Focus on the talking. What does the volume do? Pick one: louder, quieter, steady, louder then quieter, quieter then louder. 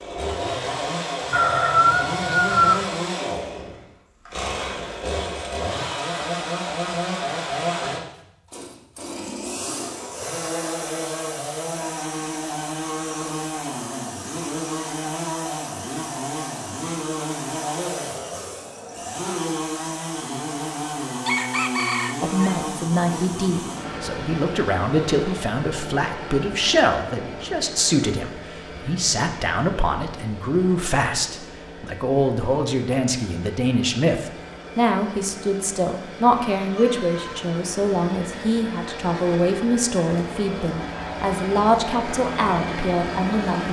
steady.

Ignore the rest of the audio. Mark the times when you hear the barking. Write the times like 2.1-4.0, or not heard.
not heard.